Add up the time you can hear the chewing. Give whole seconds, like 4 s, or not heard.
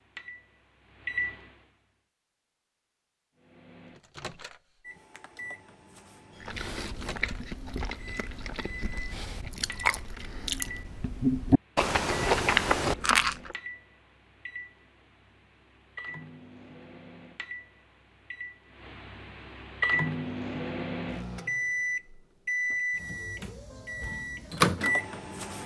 7 s.